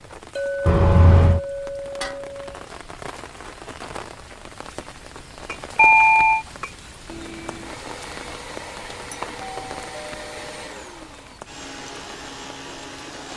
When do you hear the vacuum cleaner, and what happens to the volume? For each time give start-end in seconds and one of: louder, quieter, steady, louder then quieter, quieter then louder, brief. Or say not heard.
7.0-13.3 steady.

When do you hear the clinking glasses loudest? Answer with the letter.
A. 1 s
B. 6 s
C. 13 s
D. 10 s
A.